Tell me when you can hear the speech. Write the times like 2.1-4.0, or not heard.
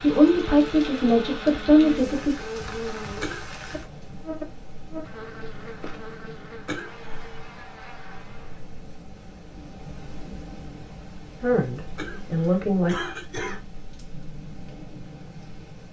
0.0-2.4, 11.4-12.9.